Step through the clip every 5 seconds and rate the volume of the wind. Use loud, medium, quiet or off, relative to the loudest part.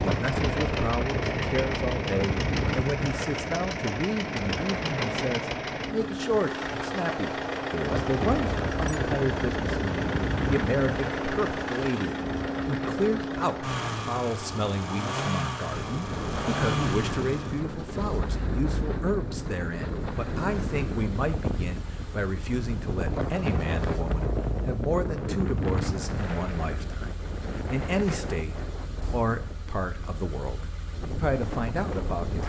loud, loud, loud, loud, loud, loud, medium.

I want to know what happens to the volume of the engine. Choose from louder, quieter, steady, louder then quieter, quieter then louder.
quieter.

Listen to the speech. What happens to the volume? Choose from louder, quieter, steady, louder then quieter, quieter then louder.
steady.